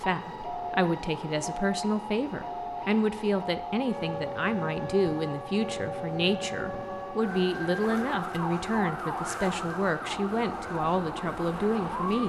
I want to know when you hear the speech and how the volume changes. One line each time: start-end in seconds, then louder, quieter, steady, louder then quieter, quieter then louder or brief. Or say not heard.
0.0-12.2 steady.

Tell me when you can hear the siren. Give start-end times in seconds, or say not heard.
0.0-12.2.